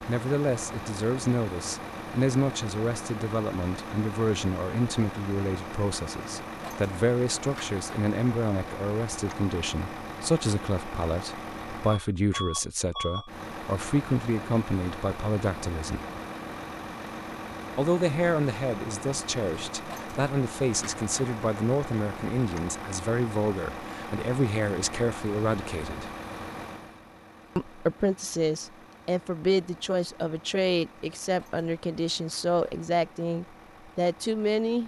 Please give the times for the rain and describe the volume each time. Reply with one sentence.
You can't hear the rain here.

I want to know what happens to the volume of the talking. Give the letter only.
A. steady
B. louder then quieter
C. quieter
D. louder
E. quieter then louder
A.